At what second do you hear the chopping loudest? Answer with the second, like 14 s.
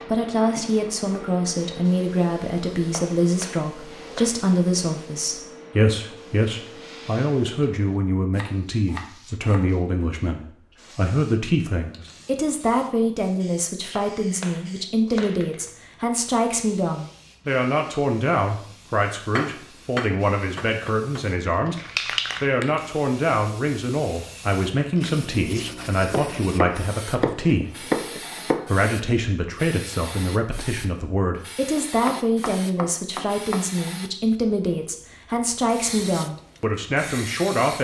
28 s.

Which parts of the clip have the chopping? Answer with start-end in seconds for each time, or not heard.
2.8-4.5, 8.3-9.7, 13.8-15.6, 19.3-21.2, 26.1-28.9, 31.8-33.7.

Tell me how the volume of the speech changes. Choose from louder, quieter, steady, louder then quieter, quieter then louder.
steady.